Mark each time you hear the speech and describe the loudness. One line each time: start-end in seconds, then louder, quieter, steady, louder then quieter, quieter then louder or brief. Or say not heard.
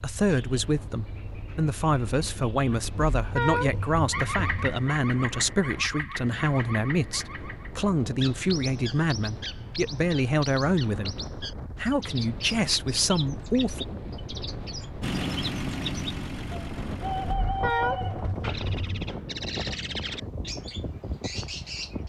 0.0-11.2 steady
11.8-13.8 brief.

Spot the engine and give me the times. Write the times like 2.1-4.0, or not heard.
15.0-17.4.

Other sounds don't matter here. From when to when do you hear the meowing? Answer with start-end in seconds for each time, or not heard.
3.0-4.8, 17.2-19.1.